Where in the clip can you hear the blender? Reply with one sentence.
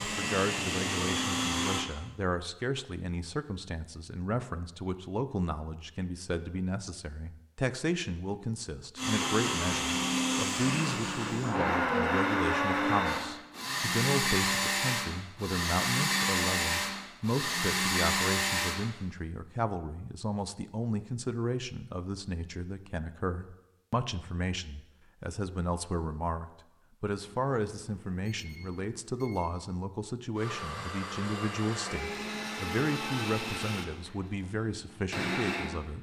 The blender can be heard from 0.0 to 1.9 s, from 8.9 to 18.9 s and from 30.4 to 35.9 s.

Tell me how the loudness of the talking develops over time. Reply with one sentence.
The volume of the talking stays about the same.